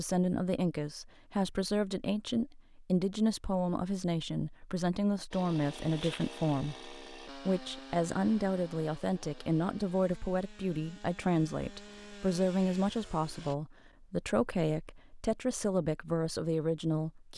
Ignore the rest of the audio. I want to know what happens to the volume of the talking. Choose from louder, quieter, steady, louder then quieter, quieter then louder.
steady.